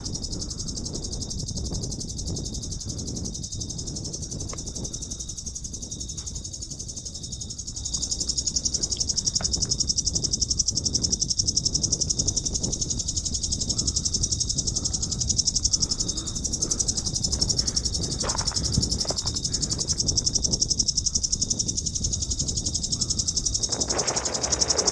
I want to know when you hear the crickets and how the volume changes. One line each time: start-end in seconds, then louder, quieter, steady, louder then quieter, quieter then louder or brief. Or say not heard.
0.0-24.8 louder.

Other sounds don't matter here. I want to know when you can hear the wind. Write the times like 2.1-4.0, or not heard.
0.0-24.8.